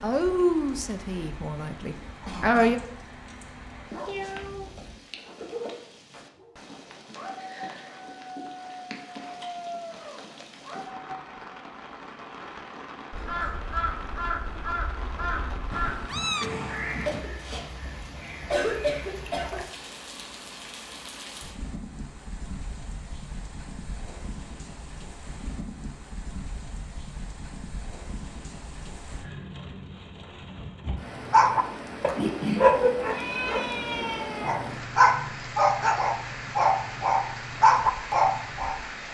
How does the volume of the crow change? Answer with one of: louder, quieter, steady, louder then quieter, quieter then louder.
quieter.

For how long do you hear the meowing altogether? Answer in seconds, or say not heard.
4 s.